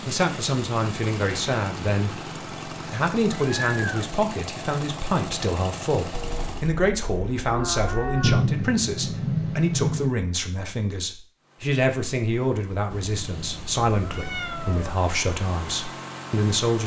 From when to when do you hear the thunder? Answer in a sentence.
The thunder can be heard from 8.2 to 10.1 s.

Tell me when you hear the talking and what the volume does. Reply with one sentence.
You can hear the talking briefly from 0.1 to 2.1 s; and from 2.8 to 16.8 s, at a steady volume.